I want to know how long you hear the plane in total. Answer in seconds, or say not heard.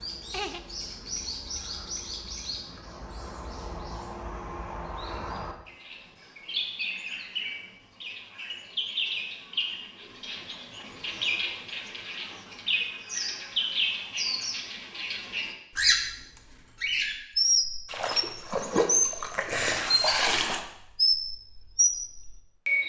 not heard.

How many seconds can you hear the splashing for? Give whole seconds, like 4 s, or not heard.
3 s.